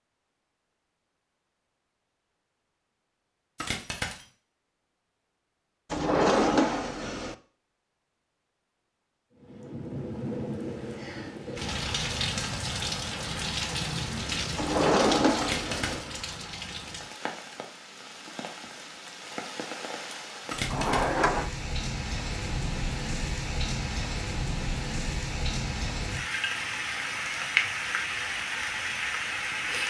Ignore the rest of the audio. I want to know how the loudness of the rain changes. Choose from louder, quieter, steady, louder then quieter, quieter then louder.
quieter then louder.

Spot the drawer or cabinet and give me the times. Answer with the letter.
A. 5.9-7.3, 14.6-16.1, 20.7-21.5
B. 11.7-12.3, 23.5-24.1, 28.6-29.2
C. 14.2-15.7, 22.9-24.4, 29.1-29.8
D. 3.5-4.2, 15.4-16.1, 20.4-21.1
A.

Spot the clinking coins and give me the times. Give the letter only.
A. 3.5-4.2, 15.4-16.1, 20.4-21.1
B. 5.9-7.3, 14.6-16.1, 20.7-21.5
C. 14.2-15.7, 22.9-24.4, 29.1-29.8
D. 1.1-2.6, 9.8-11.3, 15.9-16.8
A.